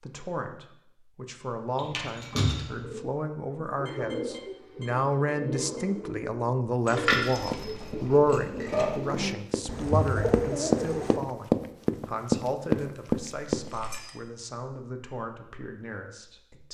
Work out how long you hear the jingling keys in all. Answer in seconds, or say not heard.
4 s.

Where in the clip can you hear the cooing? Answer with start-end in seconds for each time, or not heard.
2.8-11.2.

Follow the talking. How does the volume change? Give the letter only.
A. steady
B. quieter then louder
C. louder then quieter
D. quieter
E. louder
C.